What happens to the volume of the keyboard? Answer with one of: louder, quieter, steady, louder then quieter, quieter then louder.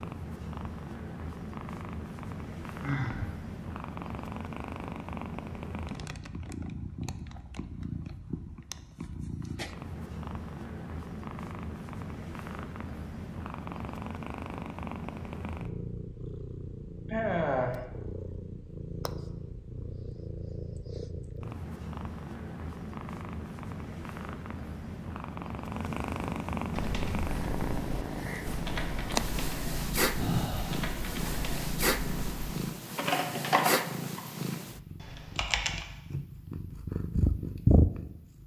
louder then quieter.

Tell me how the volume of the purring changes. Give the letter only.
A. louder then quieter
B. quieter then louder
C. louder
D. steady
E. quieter
C.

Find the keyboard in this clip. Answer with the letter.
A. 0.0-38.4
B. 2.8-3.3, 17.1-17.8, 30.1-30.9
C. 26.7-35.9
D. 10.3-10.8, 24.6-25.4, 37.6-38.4
C.